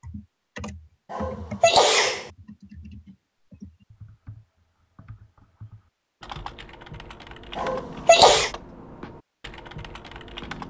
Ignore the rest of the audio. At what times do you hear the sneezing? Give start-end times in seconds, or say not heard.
1.1-2.3, 7.5-8.5.